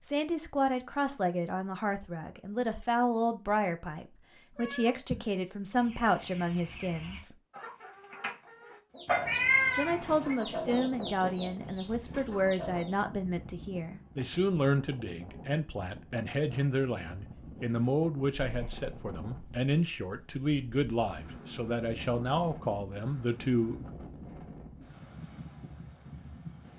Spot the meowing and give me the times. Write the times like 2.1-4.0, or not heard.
4.5-5.2, 9.1-10.3, 18.4-19.1.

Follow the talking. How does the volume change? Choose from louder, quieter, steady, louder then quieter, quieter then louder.
steady.